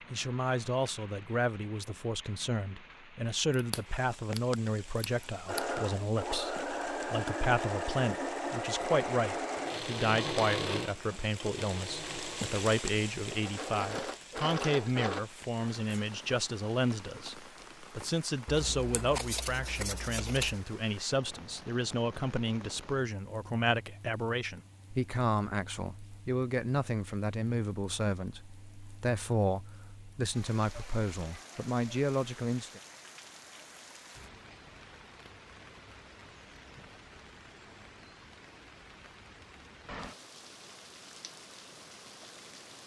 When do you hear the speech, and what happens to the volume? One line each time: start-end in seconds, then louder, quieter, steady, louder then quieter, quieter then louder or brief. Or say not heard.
0.1-32.8 steady.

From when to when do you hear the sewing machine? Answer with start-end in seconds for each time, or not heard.
5.5-15.2.